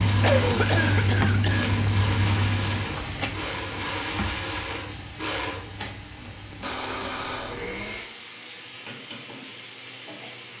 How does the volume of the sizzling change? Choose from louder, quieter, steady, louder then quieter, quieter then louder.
quieter.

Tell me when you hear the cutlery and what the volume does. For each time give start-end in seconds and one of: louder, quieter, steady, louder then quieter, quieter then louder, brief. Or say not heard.
not heard.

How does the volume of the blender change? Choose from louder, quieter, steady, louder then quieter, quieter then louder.
quieter.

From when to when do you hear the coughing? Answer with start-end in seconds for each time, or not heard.
0.2-1.7.